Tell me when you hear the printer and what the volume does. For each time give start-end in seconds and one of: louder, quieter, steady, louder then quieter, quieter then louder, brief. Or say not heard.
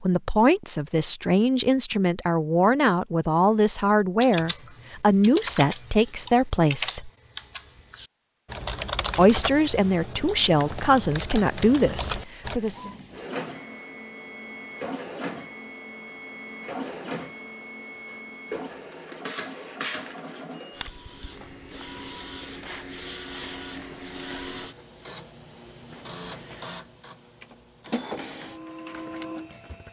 12.4-29.8 steady.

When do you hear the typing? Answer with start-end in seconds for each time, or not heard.
4.2-12.6.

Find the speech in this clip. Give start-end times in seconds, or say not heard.
0.0-7.1, 9.2-12.8.